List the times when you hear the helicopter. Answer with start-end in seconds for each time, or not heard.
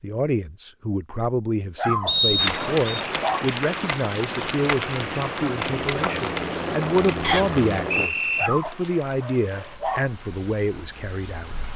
4.3-8.1.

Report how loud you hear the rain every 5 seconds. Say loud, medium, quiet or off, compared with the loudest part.
loud, medium, quiet.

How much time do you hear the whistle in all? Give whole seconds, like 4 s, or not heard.
2 s.